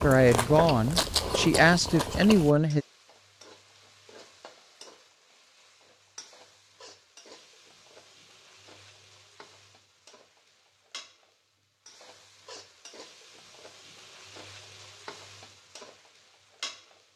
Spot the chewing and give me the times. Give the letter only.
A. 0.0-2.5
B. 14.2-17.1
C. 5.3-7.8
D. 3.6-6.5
A.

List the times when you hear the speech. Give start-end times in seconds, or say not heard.
0.0-2.9.